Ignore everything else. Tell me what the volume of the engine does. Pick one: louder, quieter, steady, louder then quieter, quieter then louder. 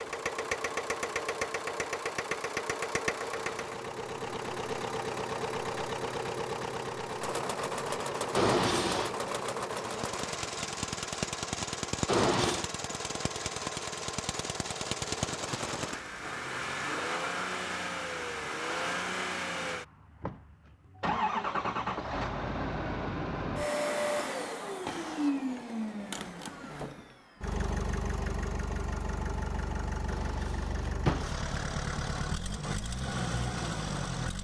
steady.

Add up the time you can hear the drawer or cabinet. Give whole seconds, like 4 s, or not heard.
3 s.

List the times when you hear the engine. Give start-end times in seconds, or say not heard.
0.0-34.3.